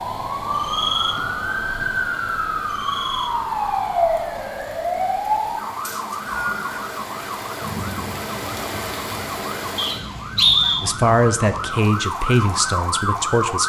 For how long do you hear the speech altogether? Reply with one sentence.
The speech can be heard for 3 seconds in total.